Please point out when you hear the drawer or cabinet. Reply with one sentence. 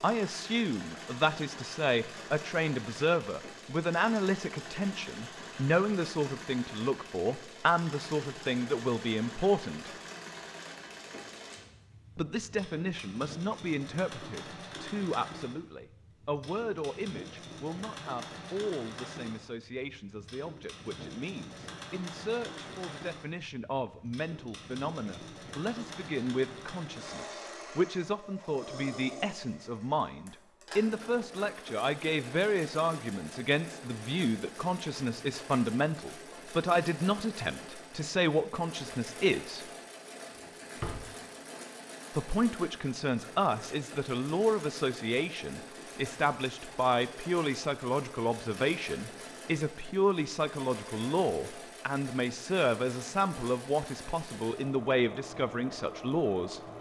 The drawer or cabinet can be heard from 40.4 to 41.0 s.